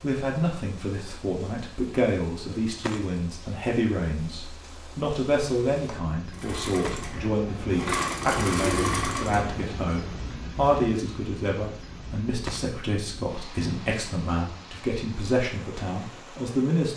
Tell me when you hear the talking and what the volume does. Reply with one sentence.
The talking can be heard from 0.0 to 16.9 s, at a steady volume.